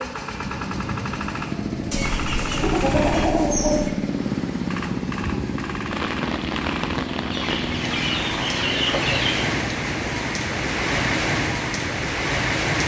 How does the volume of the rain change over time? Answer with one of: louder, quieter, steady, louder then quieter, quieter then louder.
louder.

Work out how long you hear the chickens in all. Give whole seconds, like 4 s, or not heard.
4 s.